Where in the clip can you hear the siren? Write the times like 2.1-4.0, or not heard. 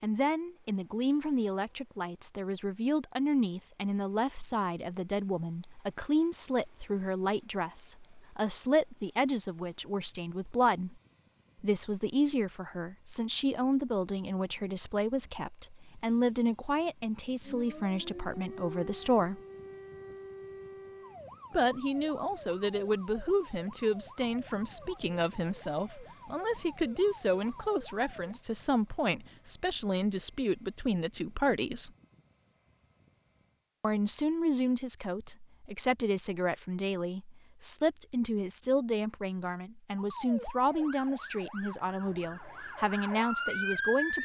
17.4-28.4, 40.0-44.2.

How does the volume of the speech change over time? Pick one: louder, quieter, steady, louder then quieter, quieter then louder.
steady.